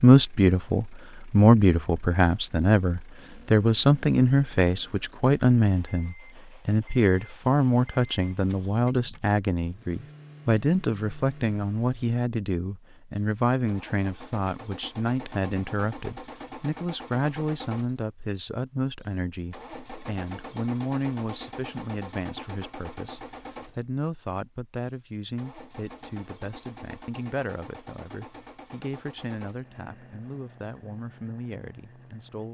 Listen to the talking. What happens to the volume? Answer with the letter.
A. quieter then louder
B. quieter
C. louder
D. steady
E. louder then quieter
B.